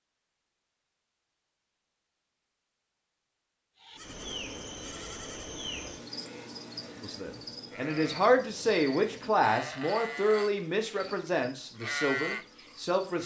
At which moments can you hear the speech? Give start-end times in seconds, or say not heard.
7.0-13.2.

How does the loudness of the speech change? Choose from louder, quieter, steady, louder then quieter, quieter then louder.
quieter.